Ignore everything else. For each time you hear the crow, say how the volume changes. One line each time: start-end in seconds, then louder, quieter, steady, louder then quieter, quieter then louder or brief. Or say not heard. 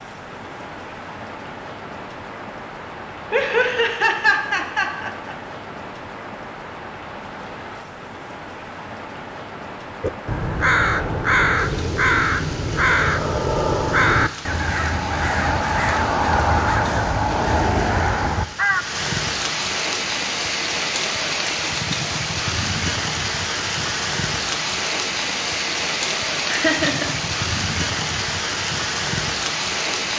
10.0-18.9 steady.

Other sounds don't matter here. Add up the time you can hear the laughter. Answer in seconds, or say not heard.
3 s.